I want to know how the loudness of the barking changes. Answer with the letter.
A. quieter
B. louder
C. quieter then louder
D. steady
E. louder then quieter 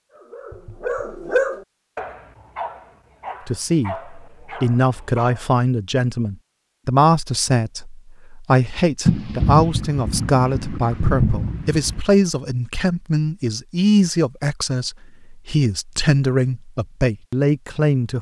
A.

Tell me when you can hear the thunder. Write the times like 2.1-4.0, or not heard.
9.1-12.0.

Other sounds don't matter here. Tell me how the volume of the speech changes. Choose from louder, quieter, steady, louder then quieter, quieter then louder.
steady.